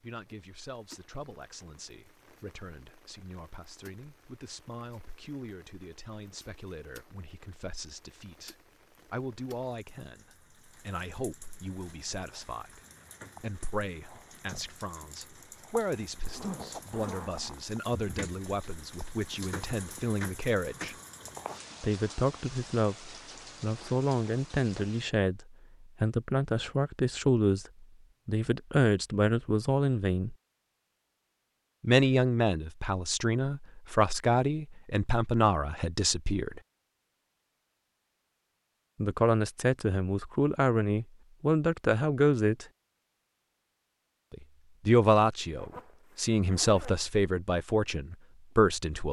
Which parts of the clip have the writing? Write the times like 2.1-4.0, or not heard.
not heard.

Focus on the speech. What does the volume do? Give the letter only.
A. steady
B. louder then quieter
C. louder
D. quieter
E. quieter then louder
C.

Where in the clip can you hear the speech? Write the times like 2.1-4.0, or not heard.
0.0-12.8, 13.4-20.9, 21.8-30.4, 31.8-36.6, 39.0-42.6, 44.3-49.0.